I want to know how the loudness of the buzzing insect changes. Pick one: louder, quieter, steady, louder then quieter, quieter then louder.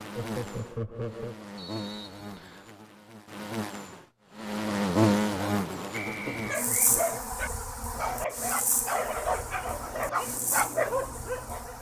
louder then quieter.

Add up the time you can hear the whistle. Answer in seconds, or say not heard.
2 s.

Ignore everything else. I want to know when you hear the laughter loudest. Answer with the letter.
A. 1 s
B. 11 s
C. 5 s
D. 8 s
A.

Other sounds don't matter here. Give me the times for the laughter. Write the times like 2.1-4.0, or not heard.
0.1-1.4, 6.1-7.2.